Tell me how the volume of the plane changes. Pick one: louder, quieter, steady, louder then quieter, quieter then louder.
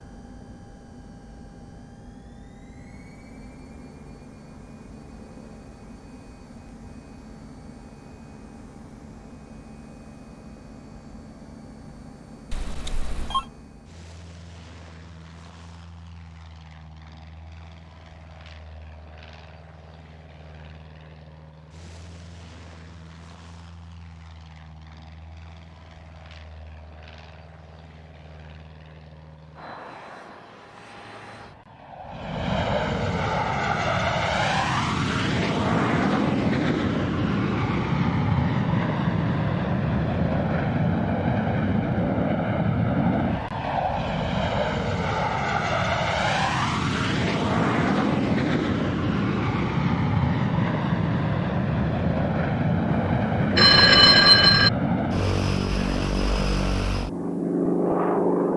louder.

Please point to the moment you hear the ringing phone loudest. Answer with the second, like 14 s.
54 s.